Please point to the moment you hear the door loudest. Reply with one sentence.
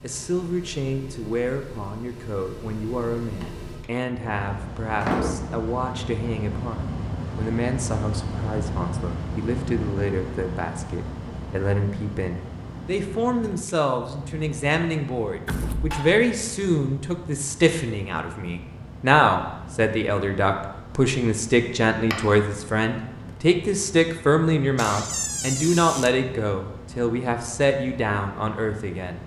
The loudest moment of the door is at 5 seconds.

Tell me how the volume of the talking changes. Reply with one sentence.
The loudness of the talking goes up.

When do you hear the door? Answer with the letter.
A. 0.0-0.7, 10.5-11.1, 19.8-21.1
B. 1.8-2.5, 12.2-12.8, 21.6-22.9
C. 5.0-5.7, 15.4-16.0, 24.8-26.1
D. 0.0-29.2
C.